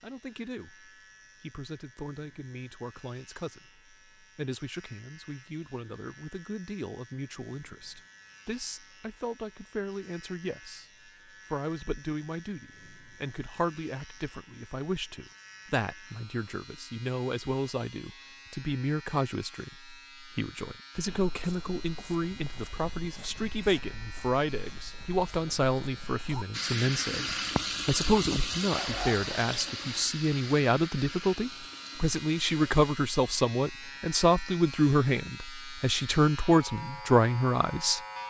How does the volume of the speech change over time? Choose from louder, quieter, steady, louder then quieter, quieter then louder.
louder.